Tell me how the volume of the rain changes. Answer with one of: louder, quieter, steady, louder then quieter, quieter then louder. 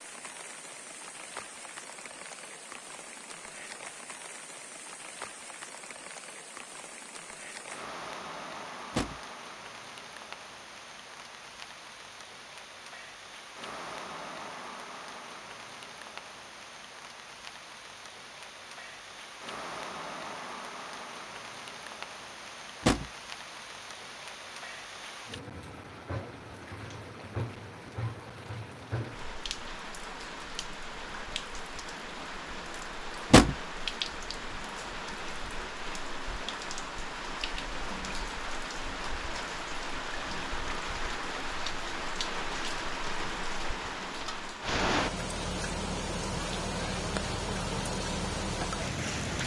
louder.